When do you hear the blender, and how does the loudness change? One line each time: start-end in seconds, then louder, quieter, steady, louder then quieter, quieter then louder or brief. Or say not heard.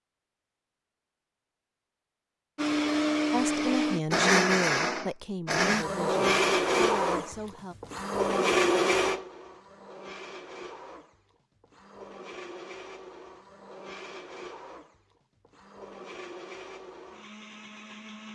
2.5-18.3 quieter.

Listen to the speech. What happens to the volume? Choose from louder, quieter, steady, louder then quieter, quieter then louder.
quieter.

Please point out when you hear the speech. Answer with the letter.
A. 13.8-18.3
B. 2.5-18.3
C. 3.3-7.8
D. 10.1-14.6
C.